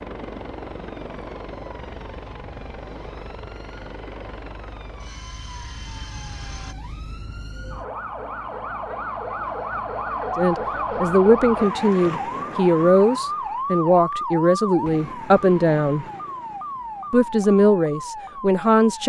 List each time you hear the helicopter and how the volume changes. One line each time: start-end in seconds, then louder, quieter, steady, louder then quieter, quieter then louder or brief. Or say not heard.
0.0-6.8 quieter.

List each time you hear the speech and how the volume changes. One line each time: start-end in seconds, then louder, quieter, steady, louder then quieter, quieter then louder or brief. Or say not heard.
10.3-16.1 steady
17.1-19.0 brief.